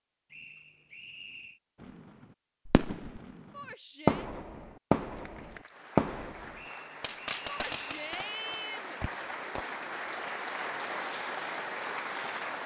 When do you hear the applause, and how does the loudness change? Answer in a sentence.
The applause can be heard from 5.1 to 12.6 s, getting louder.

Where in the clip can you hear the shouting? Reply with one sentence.
You can hear the shouting from 3.5 to 4.3 s and from 7.5 to 9.0 s.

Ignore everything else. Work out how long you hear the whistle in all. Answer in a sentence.
The whistle can be heard for 3 seconds in total.